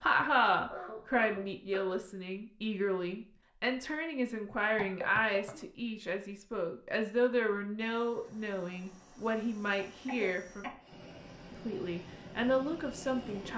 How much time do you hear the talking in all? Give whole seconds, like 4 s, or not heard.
13 s.